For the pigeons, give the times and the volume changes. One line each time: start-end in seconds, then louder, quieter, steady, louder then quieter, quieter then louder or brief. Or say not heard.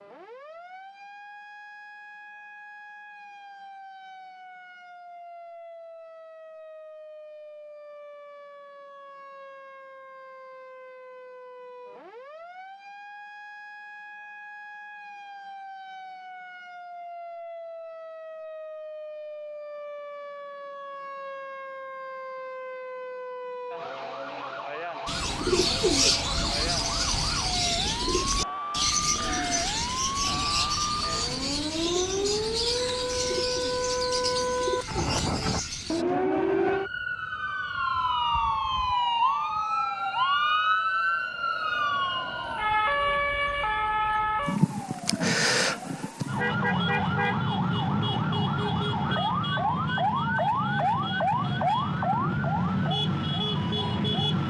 25.1-36.0 quieter.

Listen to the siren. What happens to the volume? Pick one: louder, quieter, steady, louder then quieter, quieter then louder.
louder.